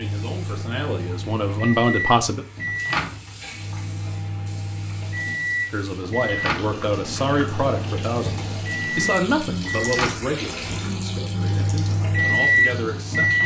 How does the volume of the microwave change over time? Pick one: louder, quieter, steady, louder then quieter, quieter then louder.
louder.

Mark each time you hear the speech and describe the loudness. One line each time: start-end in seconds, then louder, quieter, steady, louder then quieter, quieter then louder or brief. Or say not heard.
0.0-2.5 brief
5.7-13.4 quieter.